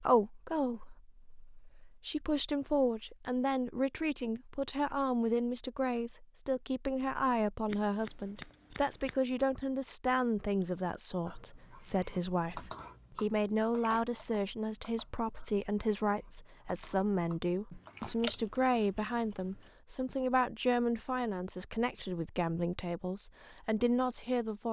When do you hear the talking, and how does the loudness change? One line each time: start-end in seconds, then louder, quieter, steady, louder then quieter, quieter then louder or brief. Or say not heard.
0.0-24.6 steady.